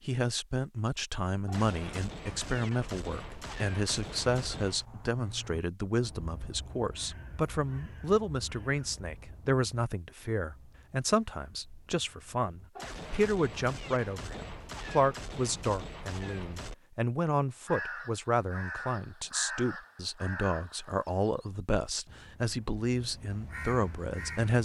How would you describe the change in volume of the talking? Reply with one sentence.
The loudness of the talking stays about the same.